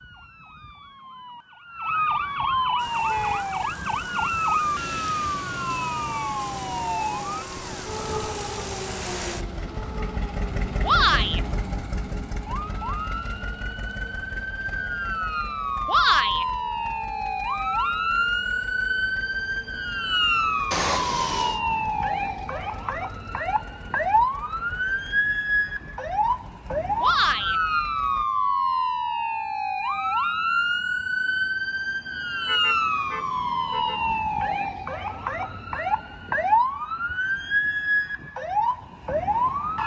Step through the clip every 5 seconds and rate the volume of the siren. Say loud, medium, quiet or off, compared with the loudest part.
loud, medium, medium, loud, loud, loud, loud, loud.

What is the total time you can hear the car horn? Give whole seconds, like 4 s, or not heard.
3 s.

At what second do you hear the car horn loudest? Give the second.
21 s.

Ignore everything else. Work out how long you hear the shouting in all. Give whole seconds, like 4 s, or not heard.
2 s.